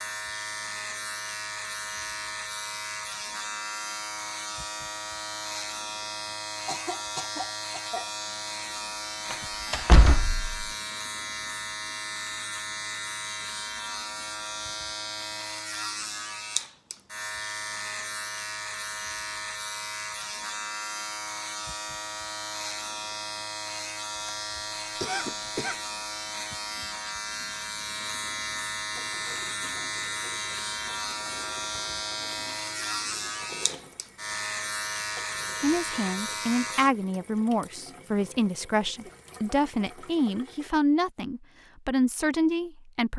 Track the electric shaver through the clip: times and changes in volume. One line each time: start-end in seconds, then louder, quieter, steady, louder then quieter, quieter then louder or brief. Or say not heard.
0.0-36.9 steady.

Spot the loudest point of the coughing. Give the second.
25 s.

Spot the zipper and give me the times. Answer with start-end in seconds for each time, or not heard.
not heard.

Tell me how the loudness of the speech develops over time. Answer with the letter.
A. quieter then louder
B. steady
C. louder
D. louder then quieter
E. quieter
B.